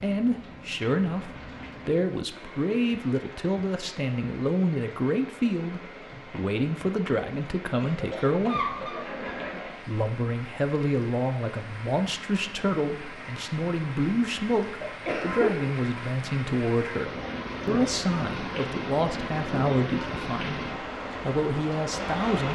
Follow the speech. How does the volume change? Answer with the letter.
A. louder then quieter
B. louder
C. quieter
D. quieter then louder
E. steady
E.